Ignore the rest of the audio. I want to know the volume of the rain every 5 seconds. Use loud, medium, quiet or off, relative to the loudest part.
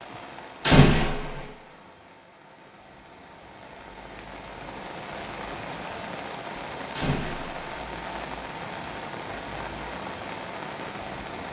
medium, loud, loud.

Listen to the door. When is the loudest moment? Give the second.
1 s.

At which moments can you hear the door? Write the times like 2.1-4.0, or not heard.
0.6-1.4, 7.0-7.5.